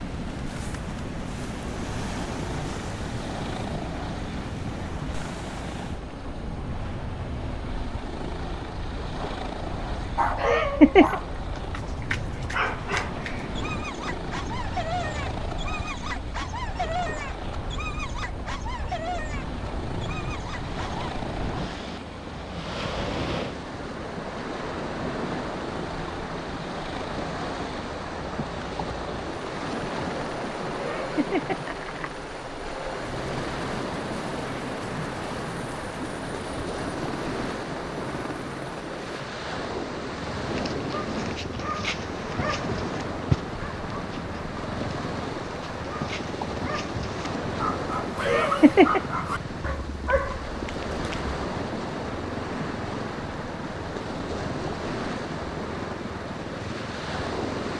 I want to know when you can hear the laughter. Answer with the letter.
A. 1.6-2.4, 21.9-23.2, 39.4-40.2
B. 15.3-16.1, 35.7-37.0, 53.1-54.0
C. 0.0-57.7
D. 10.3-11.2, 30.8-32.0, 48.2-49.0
D.